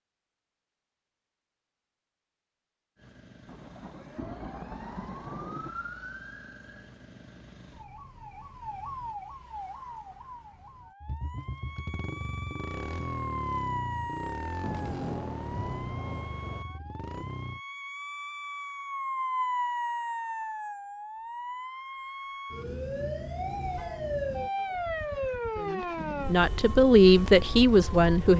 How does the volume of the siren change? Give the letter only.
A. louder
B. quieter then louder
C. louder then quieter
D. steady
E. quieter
A.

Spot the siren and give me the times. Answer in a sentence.
The siren can be heard from 3.0 to 28.3 s.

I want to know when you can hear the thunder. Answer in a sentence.
The thunder can be heard from 3.5 to 5.8 s and from 14.6 to 16.6 s.